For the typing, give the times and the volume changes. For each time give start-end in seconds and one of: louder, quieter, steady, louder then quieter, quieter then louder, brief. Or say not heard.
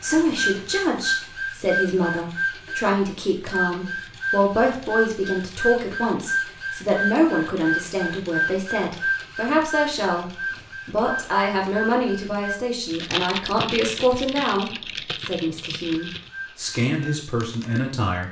12.8-18.2 quieter.